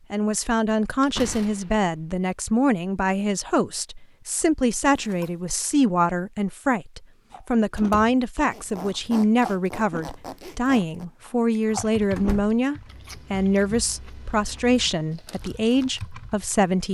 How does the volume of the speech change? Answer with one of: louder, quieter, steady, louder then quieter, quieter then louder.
steady.